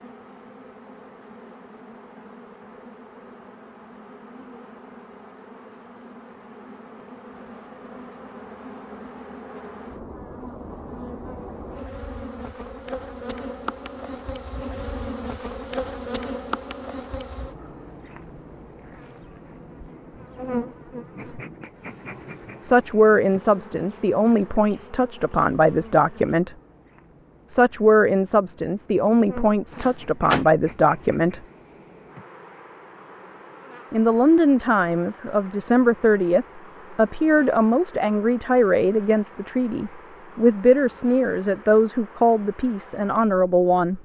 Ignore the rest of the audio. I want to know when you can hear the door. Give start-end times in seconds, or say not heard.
29.7-30.4.